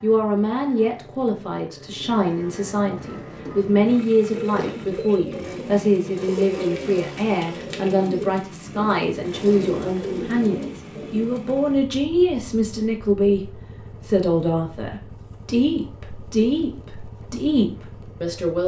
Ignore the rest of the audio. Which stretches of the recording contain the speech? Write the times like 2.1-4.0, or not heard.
0.0-18.6.